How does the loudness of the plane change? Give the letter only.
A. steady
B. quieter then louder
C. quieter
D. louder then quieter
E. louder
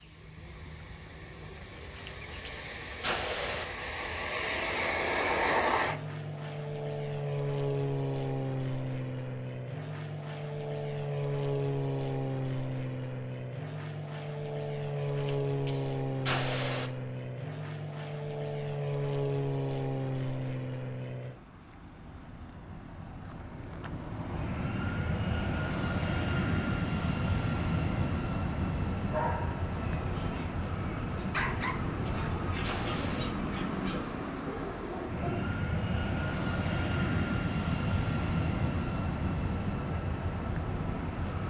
A.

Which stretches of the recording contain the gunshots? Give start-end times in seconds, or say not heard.
1.8-3.6, 15.2-16.9, 31.4-33.2.